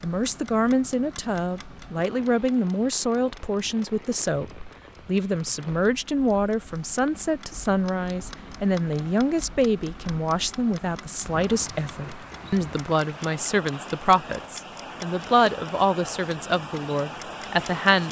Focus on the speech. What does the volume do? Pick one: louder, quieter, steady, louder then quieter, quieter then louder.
steady.